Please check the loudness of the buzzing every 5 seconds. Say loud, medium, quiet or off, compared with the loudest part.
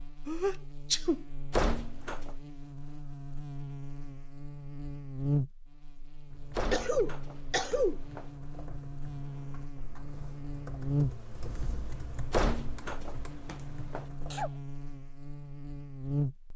medium, loud, loud, loud.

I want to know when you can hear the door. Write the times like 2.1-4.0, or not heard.
1.5-2.4, 6.5-8.3, 12.3-14.1.